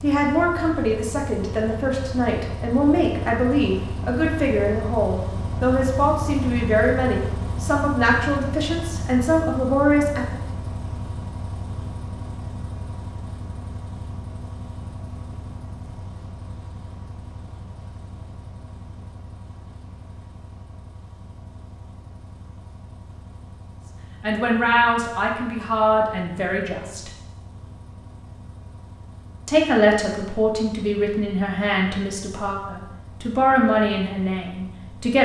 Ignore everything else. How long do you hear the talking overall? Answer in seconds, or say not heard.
19 s.